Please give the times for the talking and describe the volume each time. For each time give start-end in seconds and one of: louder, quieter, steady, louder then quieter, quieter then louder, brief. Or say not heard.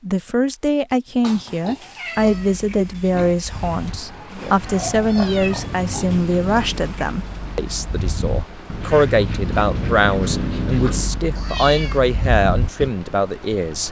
0.0-13.8 steady.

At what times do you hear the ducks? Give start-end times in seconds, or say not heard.
2.1-12.9.